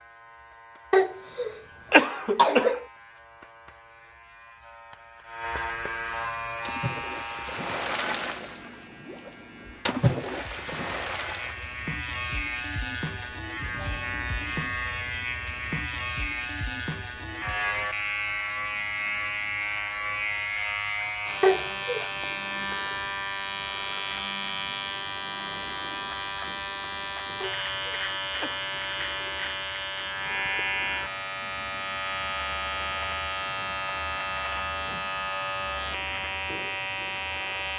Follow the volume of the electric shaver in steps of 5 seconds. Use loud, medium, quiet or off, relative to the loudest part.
quiet, medium, loud, loud, loud, loud, loud, loud.